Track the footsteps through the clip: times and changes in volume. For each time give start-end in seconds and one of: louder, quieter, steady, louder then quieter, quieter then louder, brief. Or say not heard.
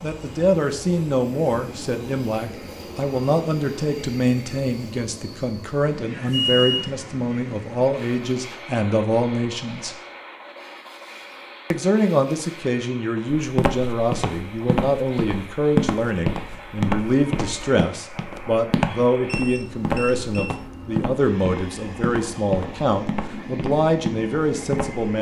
13.3-25.1 quieter.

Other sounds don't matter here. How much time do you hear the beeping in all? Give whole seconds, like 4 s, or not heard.
2 s.